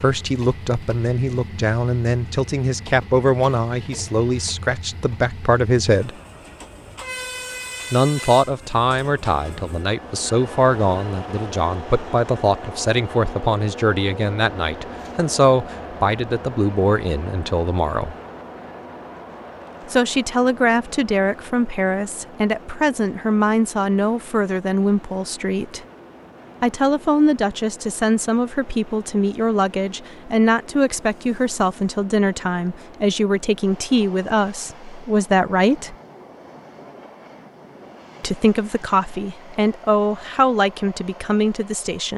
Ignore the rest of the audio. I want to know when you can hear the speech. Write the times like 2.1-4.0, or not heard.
0.0-6.1, 7.9-18.1, 19.9-25.8, 26.6-36.0, 38.2-42.1.